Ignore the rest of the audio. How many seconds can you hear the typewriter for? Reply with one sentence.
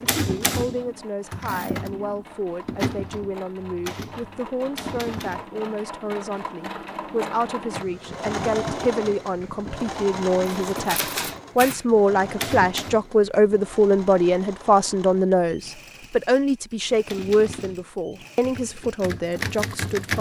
The typewriter can be heard for 11 seconds in total.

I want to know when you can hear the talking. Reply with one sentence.
You can hear the talking from 0.0 to 20.1 s.